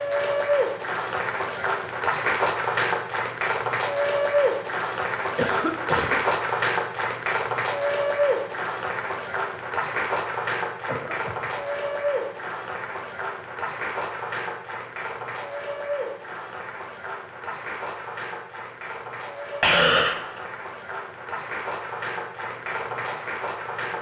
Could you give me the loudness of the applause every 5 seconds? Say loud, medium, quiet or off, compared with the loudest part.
loud, loud, medium, medium, medium.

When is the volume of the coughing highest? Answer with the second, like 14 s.
20 s.